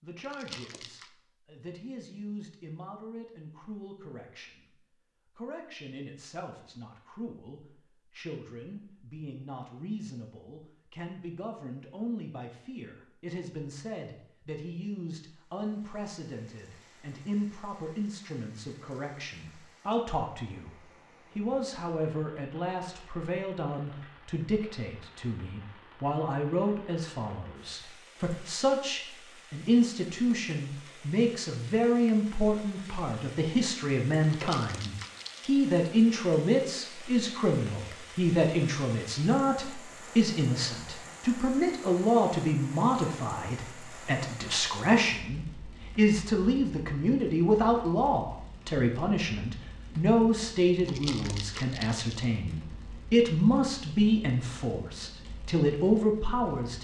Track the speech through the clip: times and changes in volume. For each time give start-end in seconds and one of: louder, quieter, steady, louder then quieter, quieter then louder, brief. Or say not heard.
0.0-56.7 louder.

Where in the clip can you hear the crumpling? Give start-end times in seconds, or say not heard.
0.2-1.1, 34.2-35.5, 50.8-52.1.